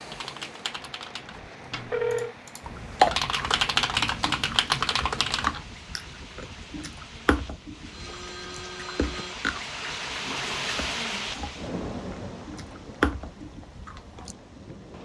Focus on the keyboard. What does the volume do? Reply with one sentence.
The volume of the keyboard goes down, then up.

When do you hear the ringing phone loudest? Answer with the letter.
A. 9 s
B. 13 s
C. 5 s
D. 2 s
D.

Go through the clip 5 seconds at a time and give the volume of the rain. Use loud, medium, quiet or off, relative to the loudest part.
medium, medium, loud.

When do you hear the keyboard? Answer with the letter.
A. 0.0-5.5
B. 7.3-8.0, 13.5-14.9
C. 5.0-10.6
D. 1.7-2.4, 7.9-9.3
A.